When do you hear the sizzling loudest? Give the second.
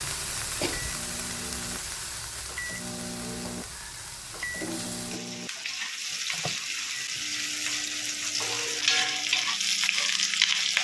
10 s.